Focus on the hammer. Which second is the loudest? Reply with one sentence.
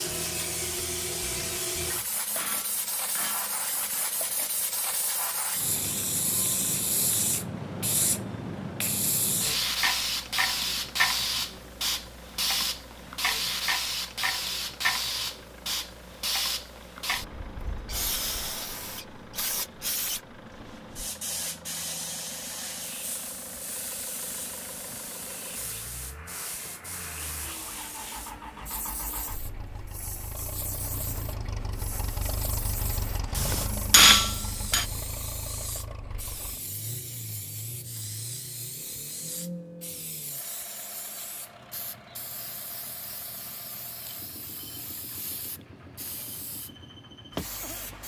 The volume of the hammer peaks at 34 seconds.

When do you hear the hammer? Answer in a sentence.
You can hear the hammer from 1.8 to 4.0 s and from 33.3 to 34.9 s.